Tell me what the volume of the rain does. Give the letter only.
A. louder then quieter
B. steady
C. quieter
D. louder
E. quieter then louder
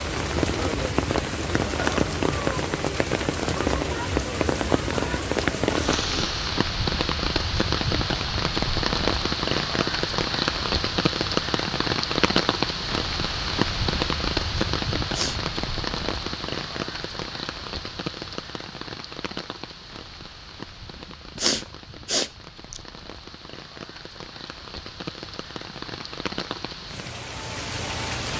C.